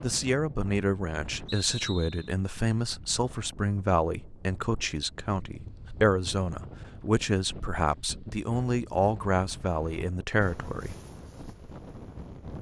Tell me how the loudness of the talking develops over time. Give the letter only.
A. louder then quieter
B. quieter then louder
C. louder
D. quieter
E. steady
E.